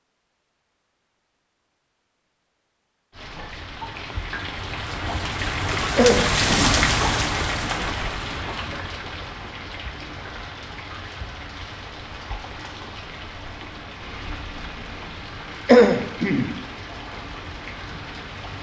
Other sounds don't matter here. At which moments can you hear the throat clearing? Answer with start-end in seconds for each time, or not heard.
6.0-6.8, 15.7-16.5.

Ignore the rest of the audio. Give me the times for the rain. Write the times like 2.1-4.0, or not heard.
3.1-18.5.